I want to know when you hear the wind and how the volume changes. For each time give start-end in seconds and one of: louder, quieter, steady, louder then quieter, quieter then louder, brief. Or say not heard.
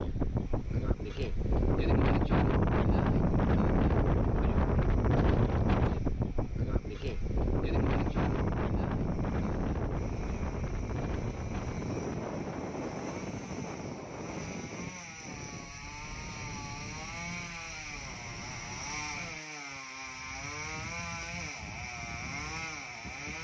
0.0-23.3 quieter.